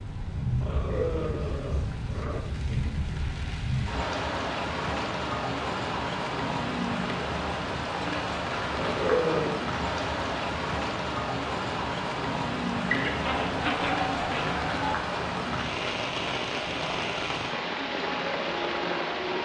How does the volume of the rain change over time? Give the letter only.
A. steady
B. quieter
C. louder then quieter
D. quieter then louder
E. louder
A.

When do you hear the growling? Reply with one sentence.
The growling can be heard from 0.6 to 2.4 s, from 8.7 to 9.6 s and from 13.2 to 14.7 s.